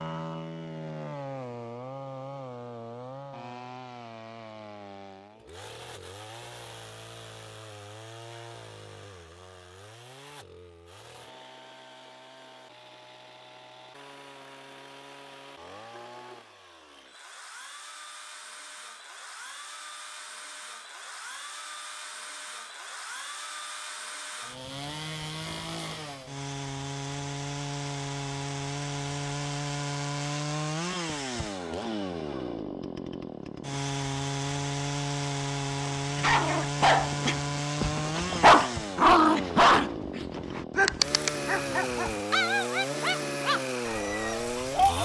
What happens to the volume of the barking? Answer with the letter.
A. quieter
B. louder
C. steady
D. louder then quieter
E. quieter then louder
D.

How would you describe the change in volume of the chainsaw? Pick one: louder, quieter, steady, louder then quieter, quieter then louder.
quieter then louder.